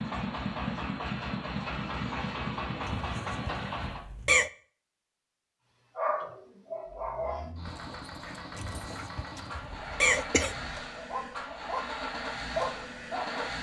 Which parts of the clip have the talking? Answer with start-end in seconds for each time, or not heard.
not heard.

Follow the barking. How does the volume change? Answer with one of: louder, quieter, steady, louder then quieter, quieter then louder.
quieter then louder.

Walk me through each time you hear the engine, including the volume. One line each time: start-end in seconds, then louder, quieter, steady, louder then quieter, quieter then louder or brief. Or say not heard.
0.0-4.4 steady
6.8-13.5 louder.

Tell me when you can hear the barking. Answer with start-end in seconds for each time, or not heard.
6.0-13.5.